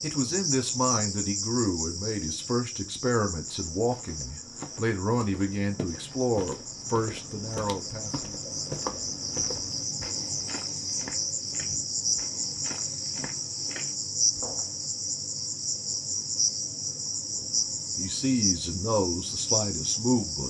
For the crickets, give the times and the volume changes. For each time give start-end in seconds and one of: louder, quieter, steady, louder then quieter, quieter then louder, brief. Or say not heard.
0.0-20.4 quieter then louder.